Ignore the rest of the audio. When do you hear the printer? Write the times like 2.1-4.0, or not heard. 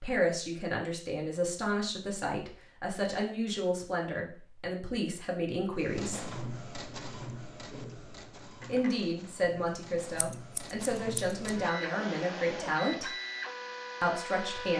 5.7-14.7.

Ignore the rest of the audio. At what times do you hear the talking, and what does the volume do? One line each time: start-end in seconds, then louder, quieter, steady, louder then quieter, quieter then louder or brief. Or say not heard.
0.0-6.2 steady
8.7-13.1 steady
14.0-14.7 brief.